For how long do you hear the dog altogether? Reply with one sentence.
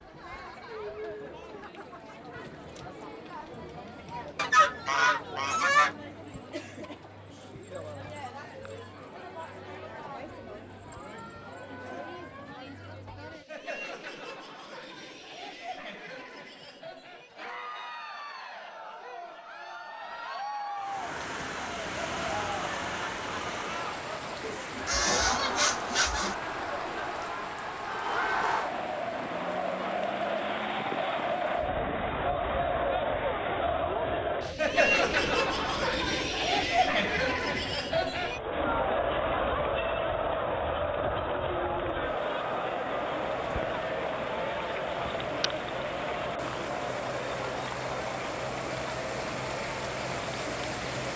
You can't hear the dog here.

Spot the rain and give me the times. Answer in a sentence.
You can hear the rain from 20.8 to 51.1 s.